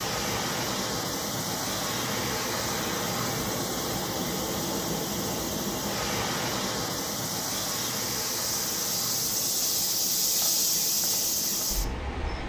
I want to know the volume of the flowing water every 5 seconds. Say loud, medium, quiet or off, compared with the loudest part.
loud, loud, medium.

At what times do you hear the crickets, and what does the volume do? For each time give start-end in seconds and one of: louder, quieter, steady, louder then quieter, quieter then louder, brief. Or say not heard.
0.0-12.4 louder.